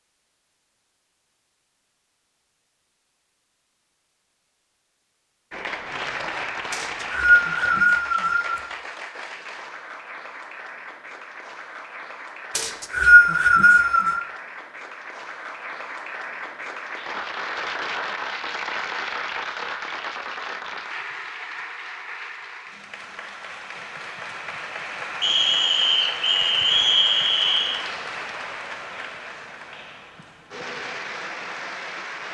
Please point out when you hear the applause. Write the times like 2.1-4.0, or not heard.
5.5-32.2.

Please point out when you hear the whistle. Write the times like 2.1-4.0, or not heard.
6.7-8.6, 12.6-14.2, 25.2-27.8.